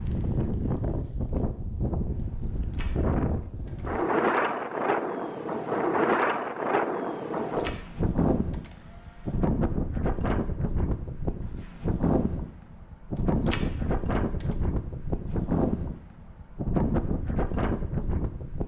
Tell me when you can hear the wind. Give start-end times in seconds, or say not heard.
0.0-18.6.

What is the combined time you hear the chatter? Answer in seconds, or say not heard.
not heard.